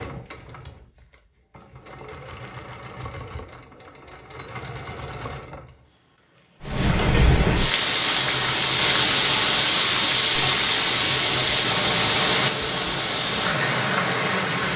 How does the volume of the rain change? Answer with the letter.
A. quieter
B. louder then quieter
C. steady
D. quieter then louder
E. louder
C.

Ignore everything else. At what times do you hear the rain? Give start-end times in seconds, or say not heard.
6.6-14.7.